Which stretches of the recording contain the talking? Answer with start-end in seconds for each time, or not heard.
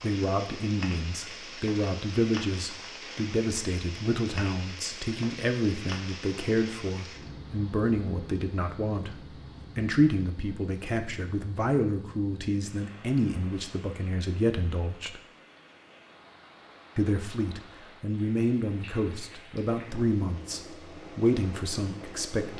0.0-15.2, 16.9-22.5.